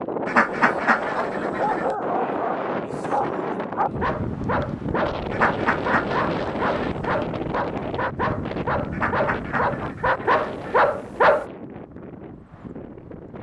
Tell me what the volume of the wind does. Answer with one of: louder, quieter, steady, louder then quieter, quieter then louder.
quieter.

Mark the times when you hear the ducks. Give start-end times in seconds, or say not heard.
0.2-1.9, 5.3-7.2, 8.9-10.8.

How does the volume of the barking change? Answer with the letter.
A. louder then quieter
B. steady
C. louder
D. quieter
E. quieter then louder
C.